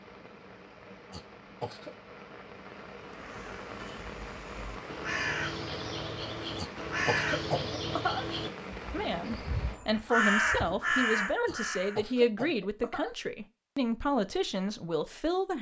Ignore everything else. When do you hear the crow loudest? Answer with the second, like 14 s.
10 s.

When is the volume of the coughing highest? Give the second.
8 s.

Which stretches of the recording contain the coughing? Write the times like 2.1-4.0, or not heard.
1.1-1.9, 6.5-8.3, 11.4-13.2.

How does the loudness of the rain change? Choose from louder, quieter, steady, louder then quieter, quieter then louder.
louder.